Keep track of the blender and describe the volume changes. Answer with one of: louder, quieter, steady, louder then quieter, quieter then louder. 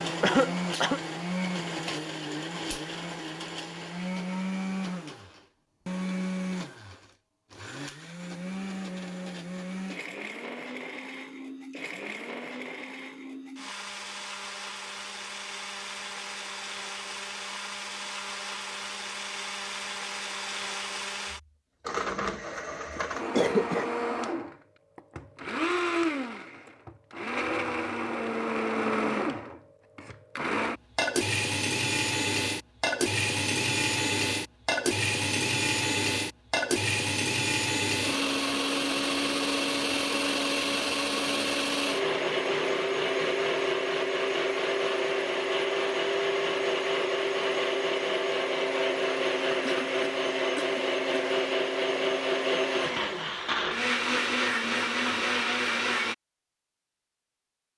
louder.